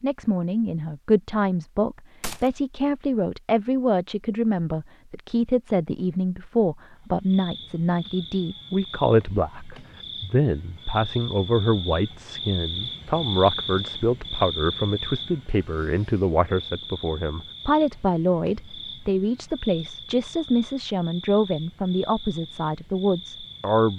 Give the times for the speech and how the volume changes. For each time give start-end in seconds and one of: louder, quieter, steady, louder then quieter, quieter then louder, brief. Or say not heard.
0.0-23.9 steady.